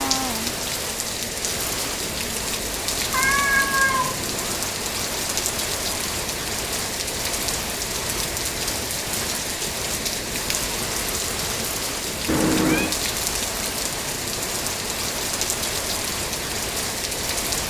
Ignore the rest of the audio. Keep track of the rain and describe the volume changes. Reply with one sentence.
The loudness of the rain stays about the same.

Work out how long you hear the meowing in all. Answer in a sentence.
The meowing can be heard for 2 seconds in total.